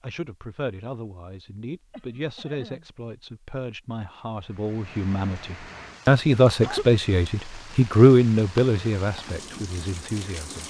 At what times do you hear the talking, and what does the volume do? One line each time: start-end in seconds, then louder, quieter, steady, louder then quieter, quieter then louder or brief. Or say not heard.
0.0-10.6 louder then quieter.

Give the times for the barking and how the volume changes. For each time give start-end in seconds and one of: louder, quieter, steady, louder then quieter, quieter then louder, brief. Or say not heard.
not heard.